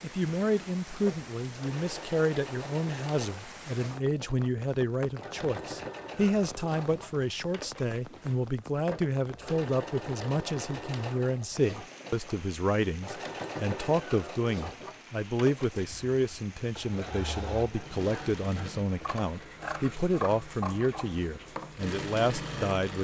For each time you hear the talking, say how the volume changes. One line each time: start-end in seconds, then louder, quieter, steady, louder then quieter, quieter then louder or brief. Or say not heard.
0.0-23.0 steady.